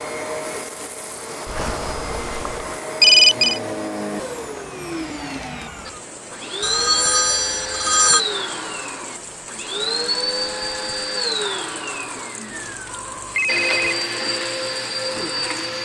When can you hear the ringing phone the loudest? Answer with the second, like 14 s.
3 s.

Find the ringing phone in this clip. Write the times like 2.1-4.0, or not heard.
1.4-3.6, 6.6-8.2, 12.5-13.8.